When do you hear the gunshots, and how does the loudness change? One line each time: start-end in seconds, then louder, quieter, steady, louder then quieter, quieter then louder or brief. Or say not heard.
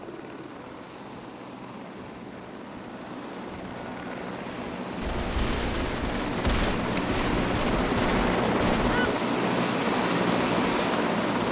5.0-9.2 steady.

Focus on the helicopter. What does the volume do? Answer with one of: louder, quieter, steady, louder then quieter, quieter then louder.
louder.